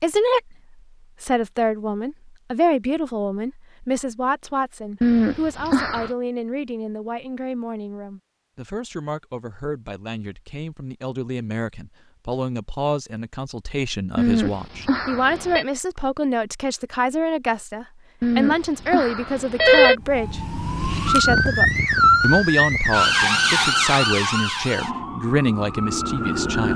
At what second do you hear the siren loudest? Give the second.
22 s.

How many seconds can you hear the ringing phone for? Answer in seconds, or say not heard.
4 s.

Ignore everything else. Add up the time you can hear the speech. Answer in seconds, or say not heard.
27 s.